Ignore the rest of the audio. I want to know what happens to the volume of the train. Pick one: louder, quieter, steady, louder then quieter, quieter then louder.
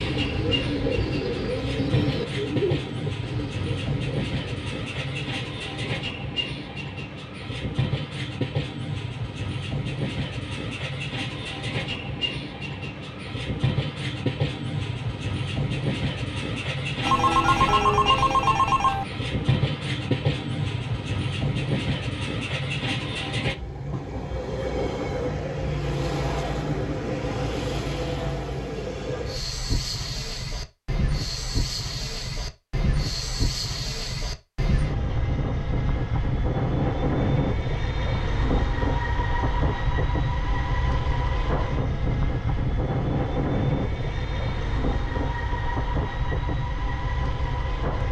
steady.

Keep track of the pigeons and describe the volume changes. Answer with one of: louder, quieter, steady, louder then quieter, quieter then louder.
quieter.